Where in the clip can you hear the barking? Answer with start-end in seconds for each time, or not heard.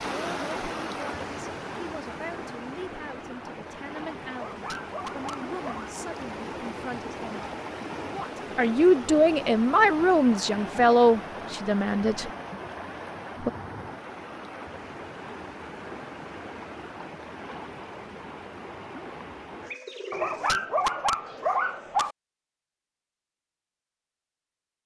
4.3-5.9, 20.1-22.1.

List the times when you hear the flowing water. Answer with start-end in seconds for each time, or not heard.
0.0-19.8.